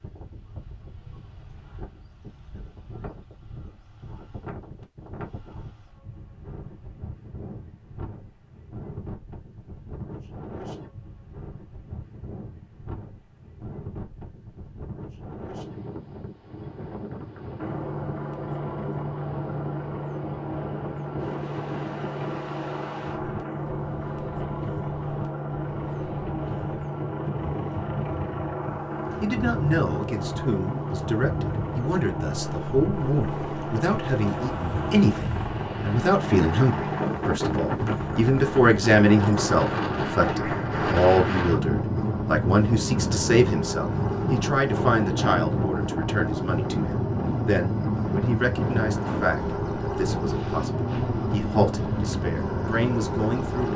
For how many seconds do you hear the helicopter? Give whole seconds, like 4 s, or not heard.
36 s.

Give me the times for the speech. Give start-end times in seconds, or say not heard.
29.2-53.7.